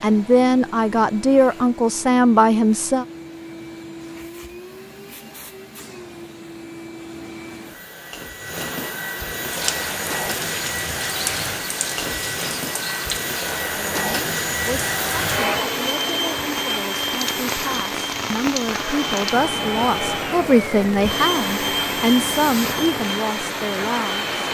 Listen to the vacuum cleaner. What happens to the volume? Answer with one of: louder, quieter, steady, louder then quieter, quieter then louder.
louder.